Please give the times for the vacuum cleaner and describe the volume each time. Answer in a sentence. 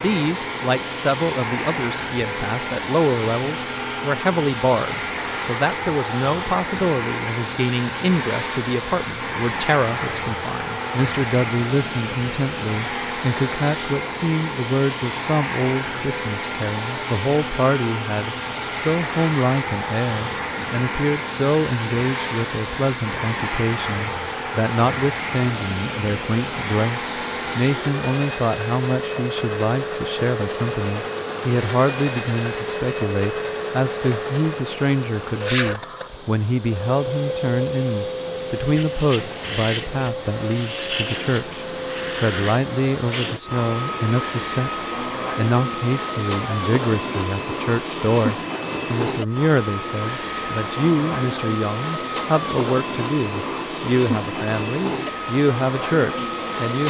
You can hear the vacuum cleaner from 0.0 to 56.8 s, at a steady volume.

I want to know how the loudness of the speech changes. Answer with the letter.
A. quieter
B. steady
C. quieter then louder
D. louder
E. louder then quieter
B.